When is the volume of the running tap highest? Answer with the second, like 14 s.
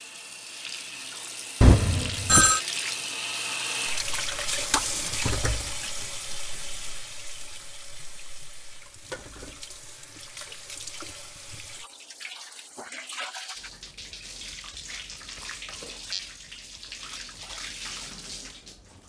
5 s.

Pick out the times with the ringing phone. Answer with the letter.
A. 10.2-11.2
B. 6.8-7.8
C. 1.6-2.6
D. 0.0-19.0
C.